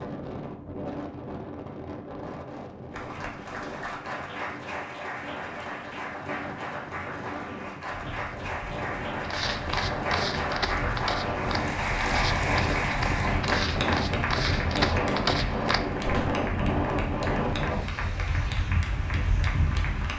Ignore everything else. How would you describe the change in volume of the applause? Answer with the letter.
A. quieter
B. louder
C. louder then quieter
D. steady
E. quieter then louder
C.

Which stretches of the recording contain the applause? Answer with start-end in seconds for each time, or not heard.
2.9-20.1.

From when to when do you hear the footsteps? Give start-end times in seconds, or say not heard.
9.2-16.4.